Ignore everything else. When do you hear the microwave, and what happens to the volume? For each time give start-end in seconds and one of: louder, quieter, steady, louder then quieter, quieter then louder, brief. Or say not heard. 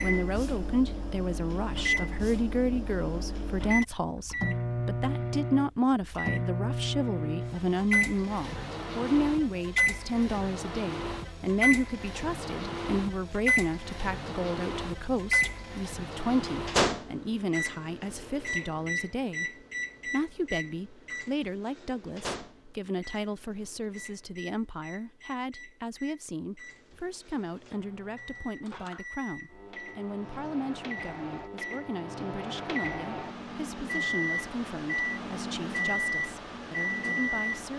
0.0-37.7 quieter then louder.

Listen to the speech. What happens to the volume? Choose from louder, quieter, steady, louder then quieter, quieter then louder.
quieter.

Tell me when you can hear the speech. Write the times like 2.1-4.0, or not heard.
0.0-37.7.